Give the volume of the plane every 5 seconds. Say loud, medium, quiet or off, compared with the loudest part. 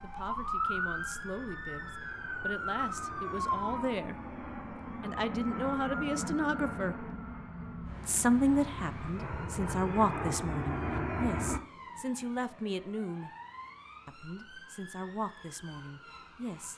quiet, medium, loud, off.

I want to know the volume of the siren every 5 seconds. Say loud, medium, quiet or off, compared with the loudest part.
loud, medium, quiet, quiet.